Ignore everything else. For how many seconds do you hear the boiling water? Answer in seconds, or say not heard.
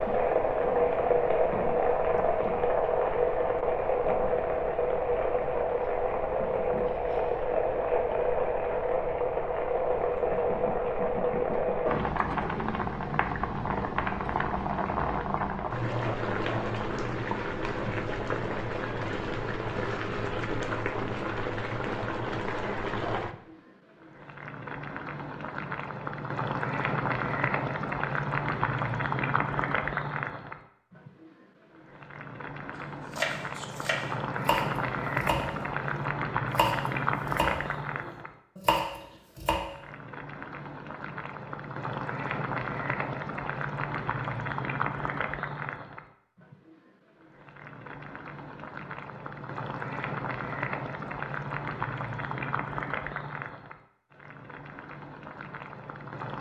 56 s.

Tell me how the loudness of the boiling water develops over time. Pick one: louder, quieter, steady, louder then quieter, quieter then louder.
quieter.